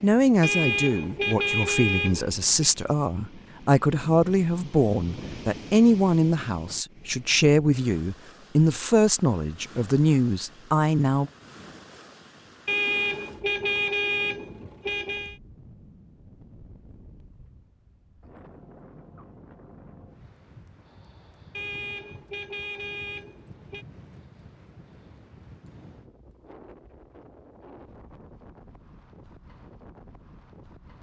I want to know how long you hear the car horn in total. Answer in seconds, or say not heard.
7 s.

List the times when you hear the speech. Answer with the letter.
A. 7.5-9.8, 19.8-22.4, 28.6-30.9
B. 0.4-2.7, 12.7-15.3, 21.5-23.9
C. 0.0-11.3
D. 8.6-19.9
C.